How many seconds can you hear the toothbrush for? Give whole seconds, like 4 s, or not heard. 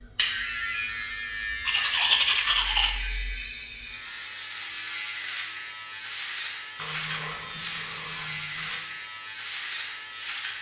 3 s.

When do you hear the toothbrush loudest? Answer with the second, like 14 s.
2 s.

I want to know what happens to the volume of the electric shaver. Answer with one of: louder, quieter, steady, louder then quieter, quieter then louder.
steady.